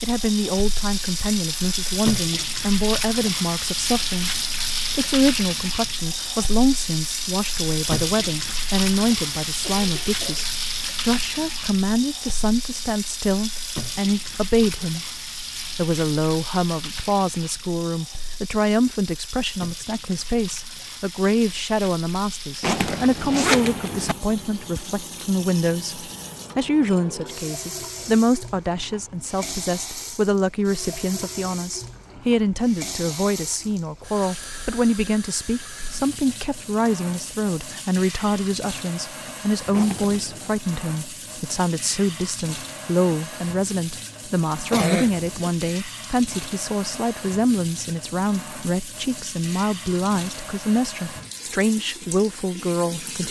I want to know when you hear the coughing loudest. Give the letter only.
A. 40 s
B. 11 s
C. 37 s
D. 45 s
D.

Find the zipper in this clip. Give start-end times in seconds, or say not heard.
22.6-24.1, 39.7-40.5.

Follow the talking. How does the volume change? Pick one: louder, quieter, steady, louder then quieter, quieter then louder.
steady.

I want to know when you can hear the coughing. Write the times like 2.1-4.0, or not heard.
9.6-10.4, 44.7-45.4.